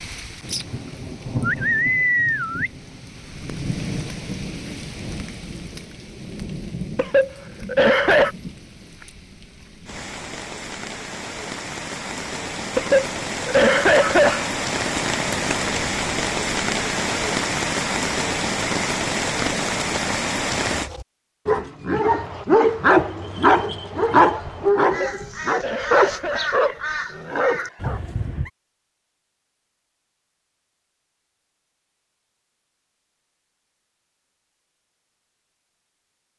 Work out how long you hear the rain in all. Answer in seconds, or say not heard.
21 s.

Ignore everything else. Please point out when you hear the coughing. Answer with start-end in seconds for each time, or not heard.
7.0-8.3, 12.8-14.5, 24.9-26.6.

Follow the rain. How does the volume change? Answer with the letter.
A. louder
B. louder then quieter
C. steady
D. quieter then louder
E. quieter
D.